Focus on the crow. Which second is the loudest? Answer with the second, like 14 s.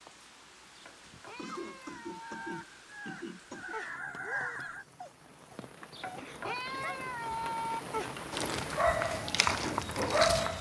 4 s.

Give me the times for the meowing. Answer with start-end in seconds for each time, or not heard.
0.8-2.6, 5.9-7.8.